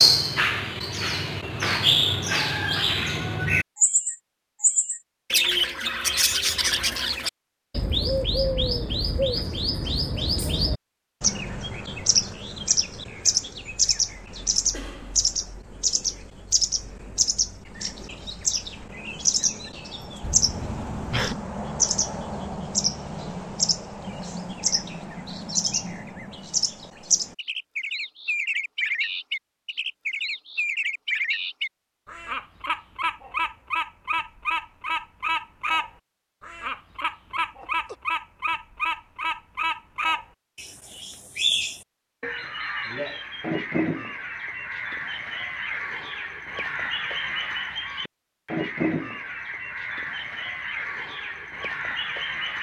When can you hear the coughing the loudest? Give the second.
21 s.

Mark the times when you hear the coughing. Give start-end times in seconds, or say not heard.
14.7-15.4, 20.2-21.4, 37.3-38.0.